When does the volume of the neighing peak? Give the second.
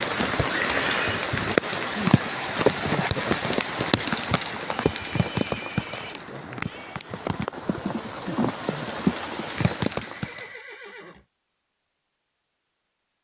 1 s.